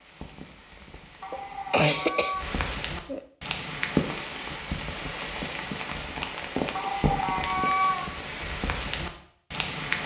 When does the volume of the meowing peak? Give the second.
8 s.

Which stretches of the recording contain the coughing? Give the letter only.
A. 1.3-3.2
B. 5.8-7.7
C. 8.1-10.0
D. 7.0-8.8
A.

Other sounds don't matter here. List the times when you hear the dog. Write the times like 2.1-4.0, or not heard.
not heard.